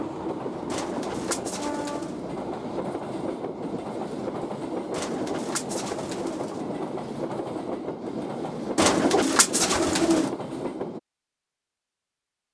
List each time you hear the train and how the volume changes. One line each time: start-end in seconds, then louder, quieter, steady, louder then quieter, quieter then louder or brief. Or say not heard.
0.0-11.0 steady.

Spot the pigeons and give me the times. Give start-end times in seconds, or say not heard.
0.7-2.2, 4.9-6.7, 8.8-10.3.